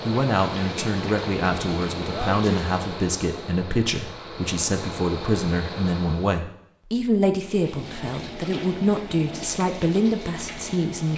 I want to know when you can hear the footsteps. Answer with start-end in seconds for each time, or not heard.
not heard.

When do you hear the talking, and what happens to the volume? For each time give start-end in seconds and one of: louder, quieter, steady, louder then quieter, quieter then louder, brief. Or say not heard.
0.1-11.1 steady.